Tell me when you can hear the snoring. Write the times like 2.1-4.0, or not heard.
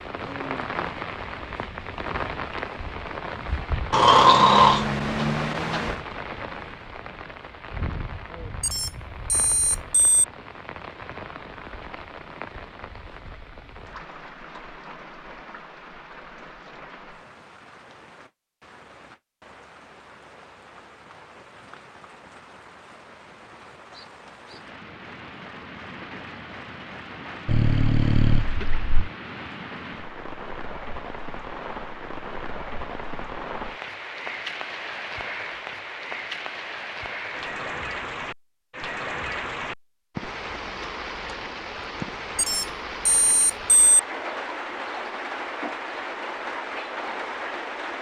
3.9-6.0, 27.4-29.1.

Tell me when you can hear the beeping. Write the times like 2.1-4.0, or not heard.
8.6-10.2, 42.4-44.0.